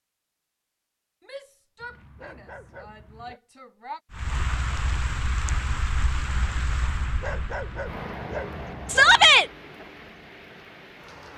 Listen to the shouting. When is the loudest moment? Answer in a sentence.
The loudest moment of the shouting is at 9 seconds.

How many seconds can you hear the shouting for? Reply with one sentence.
The shouting can be heard for 3 seconds in total.